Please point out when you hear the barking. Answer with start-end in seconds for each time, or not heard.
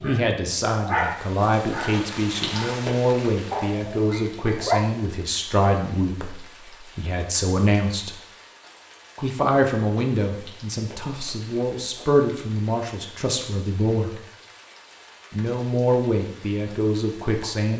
0.0-4.8.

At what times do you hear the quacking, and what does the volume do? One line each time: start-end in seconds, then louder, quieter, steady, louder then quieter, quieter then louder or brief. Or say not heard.
not heard.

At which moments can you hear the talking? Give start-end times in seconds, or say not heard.
0.0-8.2, 9.2-14.2, 15.3-17.7.